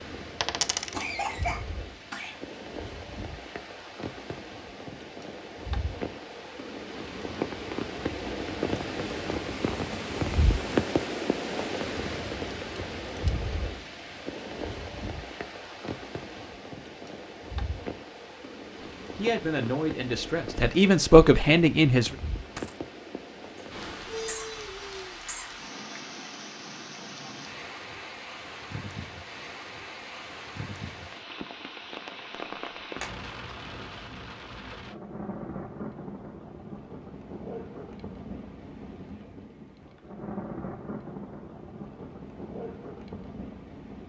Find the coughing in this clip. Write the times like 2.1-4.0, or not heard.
0.9-2.4, 23.6-25.6.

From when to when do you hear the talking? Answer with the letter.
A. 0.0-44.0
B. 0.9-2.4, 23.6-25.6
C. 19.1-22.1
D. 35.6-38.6
C.